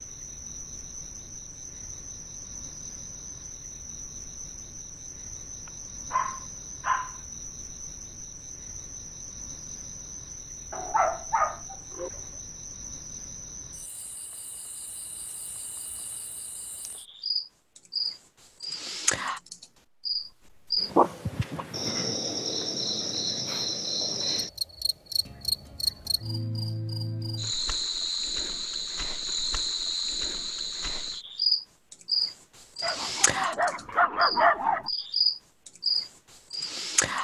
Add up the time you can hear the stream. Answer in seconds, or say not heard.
not heard.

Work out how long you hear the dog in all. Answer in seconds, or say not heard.
6 s.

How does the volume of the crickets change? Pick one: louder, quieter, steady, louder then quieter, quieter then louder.
louder.